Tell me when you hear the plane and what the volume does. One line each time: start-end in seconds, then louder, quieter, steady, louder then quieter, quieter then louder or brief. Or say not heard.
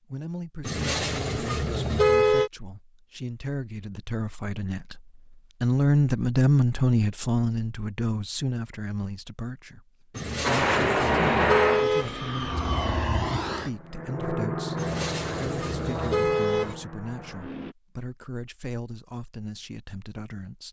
10.4-17.8 quieter.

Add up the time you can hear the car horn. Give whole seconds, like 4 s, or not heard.
6 s.